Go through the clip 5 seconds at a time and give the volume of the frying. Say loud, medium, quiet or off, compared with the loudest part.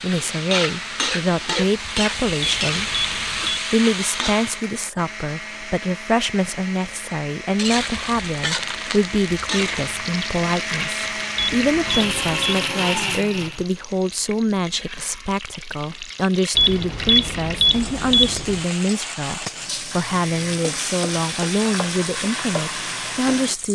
loud, loud, medium, medium, loud.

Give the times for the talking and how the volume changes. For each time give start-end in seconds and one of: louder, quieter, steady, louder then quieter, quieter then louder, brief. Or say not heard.
0.0-23.7 steady.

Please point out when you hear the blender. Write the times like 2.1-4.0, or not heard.
0.2-13.7.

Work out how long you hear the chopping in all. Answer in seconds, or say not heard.
not heard.